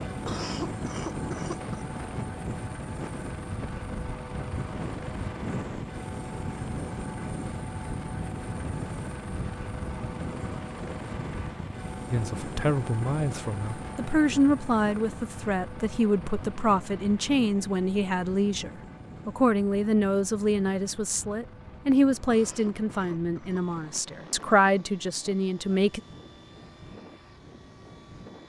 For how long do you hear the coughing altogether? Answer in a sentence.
You can hear the coughing for 3 seconds altogether.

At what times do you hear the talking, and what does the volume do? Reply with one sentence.
The talking can be heard from 12.1 to 26.0 s, at a steady volume.